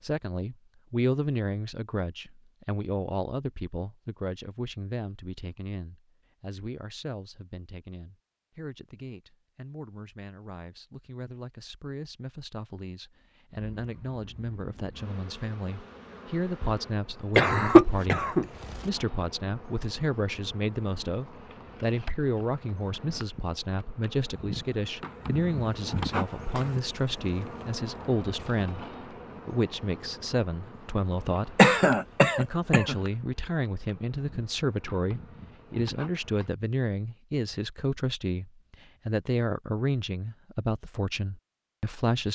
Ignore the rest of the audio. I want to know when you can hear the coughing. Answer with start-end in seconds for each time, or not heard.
17.4-18.8, 31.6-33.0.